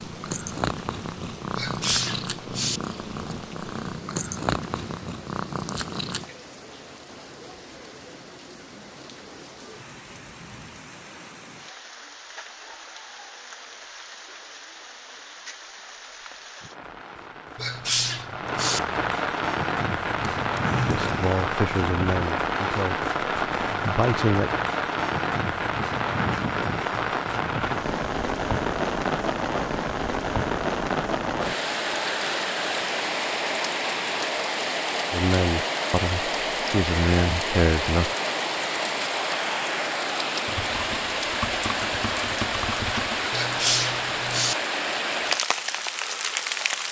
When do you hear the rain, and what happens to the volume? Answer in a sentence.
You can hear the rain from 0.0 to 46.8 s, getting louder.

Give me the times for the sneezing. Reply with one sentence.
The sneezing can be heard from 1.6 to 2.8 s, from 17.6 to 18.8 s and from 43.3 to 44.5 s.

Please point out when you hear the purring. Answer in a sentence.
You can hear the purring from 0.0 to 6.3 s.